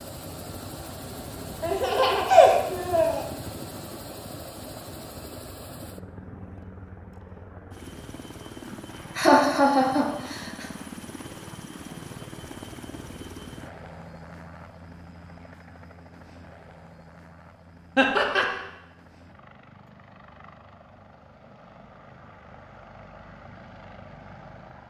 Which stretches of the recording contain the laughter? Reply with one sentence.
You can hear the laughter from 1.6 to 3.2 s, from 8.7 to 10.7 s and from 17.9 to 18.4 s.